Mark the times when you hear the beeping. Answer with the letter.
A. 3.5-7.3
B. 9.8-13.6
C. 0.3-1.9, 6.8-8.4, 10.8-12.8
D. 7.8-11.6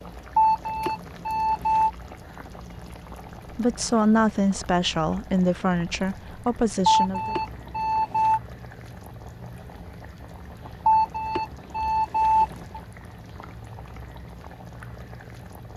C.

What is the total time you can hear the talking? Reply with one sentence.
The talking can be heard for 4 seconds in total.